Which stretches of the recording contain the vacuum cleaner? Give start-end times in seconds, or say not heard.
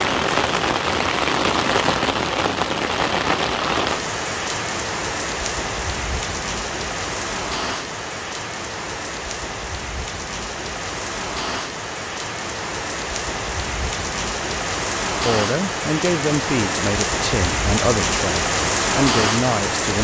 not heard.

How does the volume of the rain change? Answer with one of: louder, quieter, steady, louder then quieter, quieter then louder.
quieter then louder.